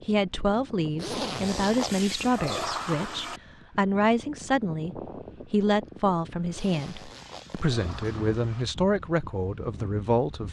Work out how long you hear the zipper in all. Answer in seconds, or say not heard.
3 s.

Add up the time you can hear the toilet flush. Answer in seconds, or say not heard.
4 s.